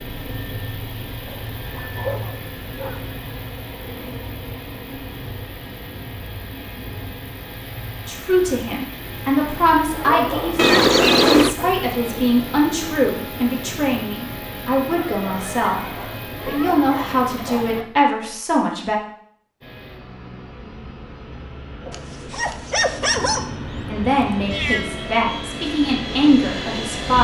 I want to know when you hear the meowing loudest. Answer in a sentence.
The volume of the meowing peaks at 11 seconds.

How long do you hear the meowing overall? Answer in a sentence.
You can hear the meowing for 3 seconds altogether.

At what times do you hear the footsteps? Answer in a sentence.
The footsteps can't be heard in this clip.